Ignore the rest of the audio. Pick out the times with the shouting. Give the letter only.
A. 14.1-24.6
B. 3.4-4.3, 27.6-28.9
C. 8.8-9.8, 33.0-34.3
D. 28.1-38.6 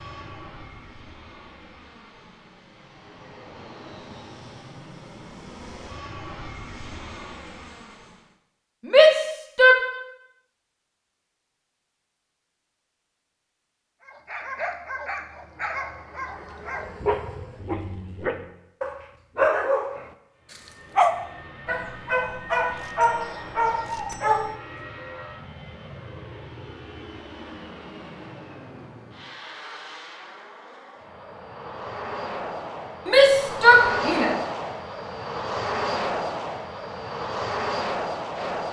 C.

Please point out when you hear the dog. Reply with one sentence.
The dog can be heard from 14.1 to 24.6 s.